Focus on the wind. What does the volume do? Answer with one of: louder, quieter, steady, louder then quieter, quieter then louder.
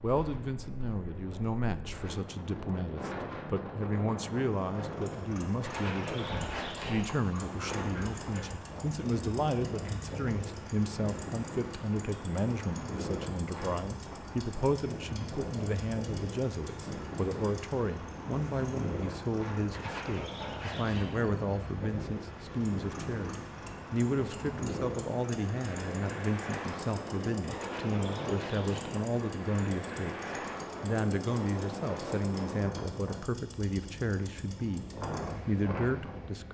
steady.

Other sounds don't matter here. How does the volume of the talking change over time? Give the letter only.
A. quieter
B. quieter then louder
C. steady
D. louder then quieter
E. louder
C.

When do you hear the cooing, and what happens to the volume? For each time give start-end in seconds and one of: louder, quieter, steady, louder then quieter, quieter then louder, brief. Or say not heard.
not heard.